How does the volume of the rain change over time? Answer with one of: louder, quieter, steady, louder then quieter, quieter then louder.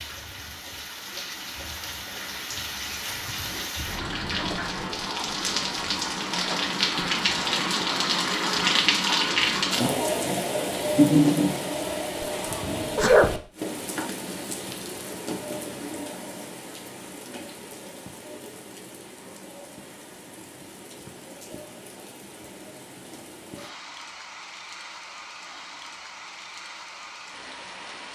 louder then quieter.